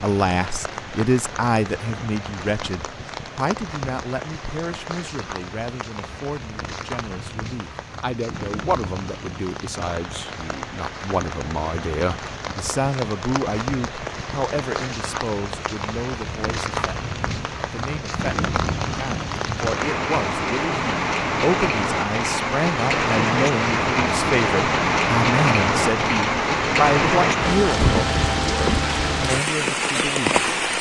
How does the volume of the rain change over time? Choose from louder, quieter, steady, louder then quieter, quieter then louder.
louder.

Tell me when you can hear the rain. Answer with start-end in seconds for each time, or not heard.
0.0-30.7.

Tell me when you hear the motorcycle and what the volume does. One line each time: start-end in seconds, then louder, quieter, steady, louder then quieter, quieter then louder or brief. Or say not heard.
not heard.